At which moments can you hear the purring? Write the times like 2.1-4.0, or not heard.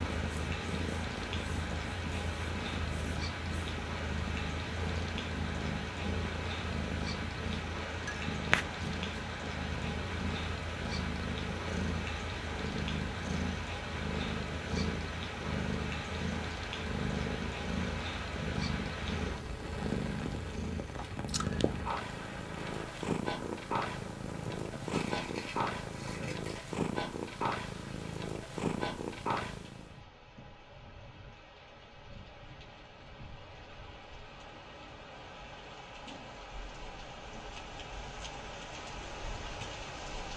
0.0-29.9.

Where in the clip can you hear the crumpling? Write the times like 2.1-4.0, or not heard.
24.9-26.8.